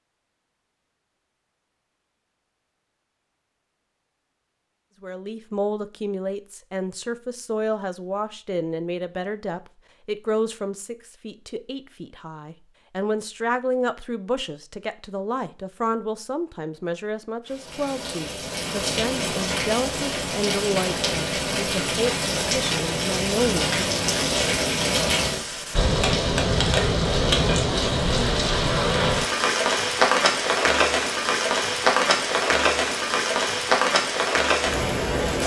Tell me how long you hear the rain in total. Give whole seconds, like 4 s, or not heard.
18 s.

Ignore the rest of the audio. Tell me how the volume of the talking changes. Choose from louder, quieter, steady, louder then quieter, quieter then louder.
steady.